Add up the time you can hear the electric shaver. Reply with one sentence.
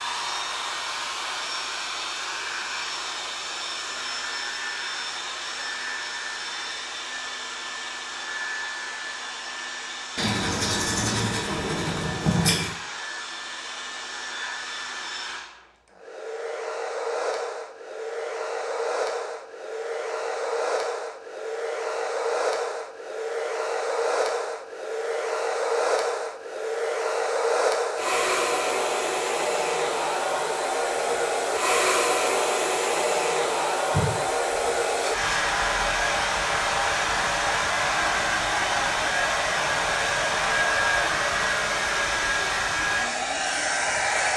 You can't hear the electric shaver here.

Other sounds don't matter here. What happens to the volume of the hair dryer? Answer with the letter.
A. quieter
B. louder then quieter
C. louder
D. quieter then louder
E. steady
C.